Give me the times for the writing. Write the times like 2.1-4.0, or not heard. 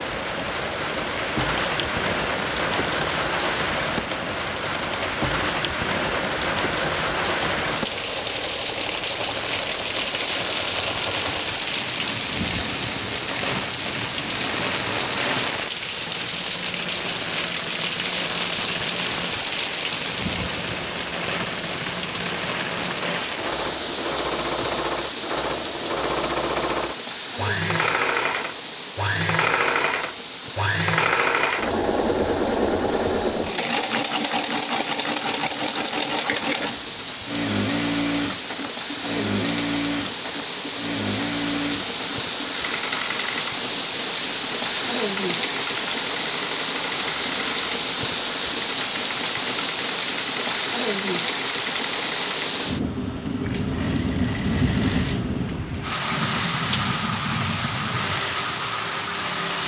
not heard.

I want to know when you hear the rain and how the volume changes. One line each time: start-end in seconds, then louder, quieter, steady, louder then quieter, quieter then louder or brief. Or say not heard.
0.0-59.6 quieter then louder.